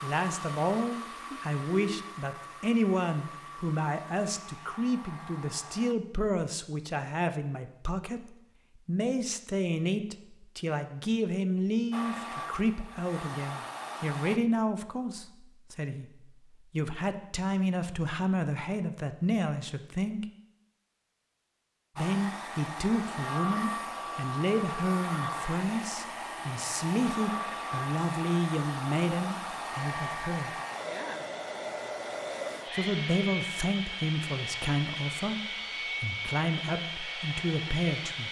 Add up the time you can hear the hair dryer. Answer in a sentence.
The hair dryer can be heard for 25 seconds in total.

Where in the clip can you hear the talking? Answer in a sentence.
The talking can be heard from 0.0 to 20.2 s, from 21.9 to 30.6 s and from 32.7 to 38.2 s.